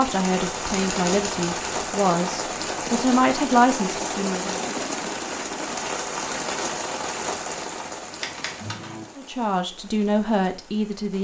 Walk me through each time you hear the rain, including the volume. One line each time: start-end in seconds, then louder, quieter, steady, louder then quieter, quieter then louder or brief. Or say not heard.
0.0-11.1 quieter.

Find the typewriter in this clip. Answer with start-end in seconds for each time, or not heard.
0.4-1.7, 8.2-9.1.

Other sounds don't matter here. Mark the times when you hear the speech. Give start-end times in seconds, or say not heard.
0.0-4.6, 9.2-11.1.